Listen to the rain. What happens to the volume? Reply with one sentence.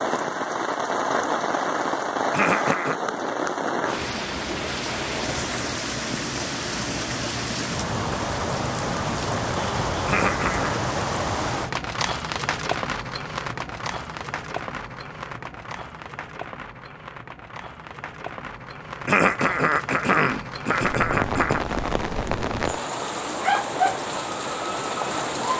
The loudness of the rain goes down, then up.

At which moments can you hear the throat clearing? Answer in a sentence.
The throat clearing can be heard from 2.3 to 3.0 s, from 10.1 to 10.8 s and from 19.1 to 21.6 s.